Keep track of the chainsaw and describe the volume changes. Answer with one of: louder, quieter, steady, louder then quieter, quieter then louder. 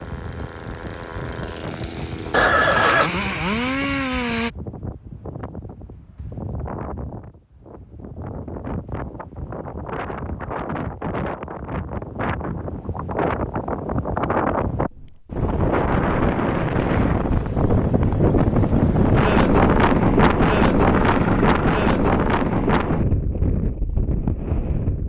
louder.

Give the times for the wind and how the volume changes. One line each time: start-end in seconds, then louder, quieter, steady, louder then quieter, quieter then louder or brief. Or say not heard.
0.0-25.0 louder.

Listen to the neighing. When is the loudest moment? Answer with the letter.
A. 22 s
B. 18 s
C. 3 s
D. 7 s
C.